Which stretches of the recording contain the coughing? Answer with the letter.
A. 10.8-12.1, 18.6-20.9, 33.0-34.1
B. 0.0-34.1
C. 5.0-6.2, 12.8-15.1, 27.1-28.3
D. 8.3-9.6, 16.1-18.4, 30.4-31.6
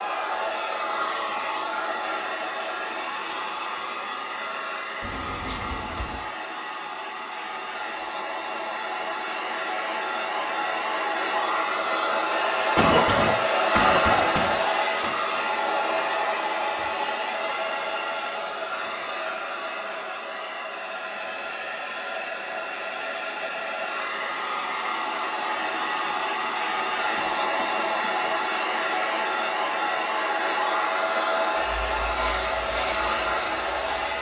C.